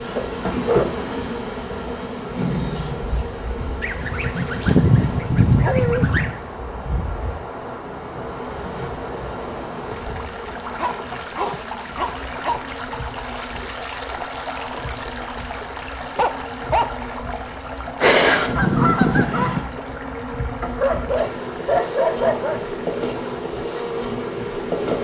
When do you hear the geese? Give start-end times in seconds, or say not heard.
3.8-6.3, 18.0-19.6.